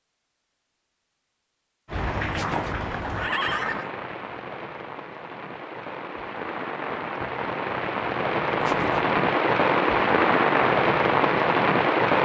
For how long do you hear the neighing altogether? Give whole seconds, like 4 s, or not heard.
2 s.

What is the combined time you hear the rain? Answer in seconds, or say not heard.
10 s.